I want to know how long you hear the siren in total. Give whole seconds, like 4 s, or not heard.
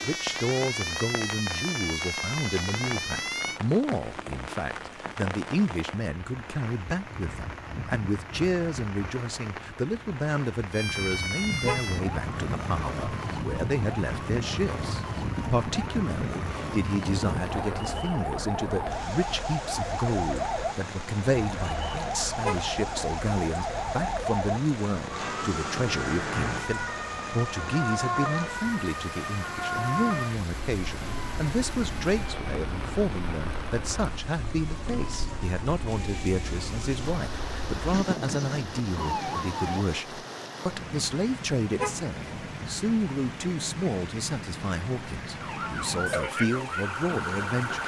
35 s.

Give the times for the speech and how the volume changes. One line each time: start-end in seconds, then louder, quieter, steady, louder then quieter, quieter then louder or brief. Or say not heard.
0.0-47.8 steady.